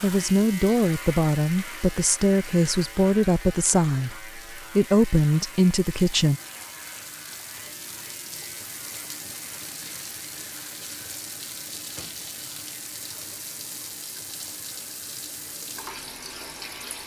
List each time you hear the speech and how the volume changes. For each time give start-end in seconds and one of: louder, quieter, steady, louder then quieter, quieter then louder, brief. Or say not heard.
0.0-6.4 steady.